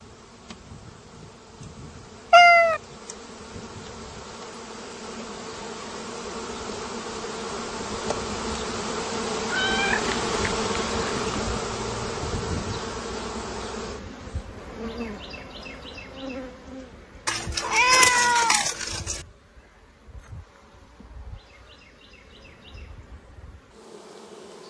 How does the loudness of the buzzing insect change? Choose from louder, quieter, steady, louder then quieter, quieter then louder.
louder then quieter.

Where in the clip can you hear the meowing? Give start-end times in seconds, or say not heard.
2.3-2.8, 9.4-11.4, 17.2-19.2.